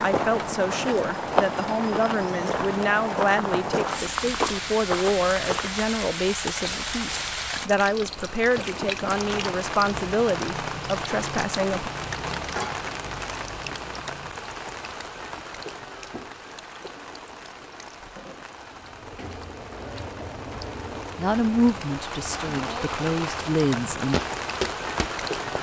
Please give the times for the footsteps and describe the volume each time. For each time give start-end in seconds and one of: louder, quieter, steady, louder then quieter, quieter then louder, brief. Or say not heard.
0.0-5.7 quieter then louder
24.1-25.5 brief.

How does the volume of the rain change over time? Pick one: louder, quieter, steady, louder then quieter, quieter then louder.
quieter then louder.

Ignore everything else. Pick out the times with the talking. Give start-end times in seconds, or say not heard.
0.0-11.9, 21.1-24.1.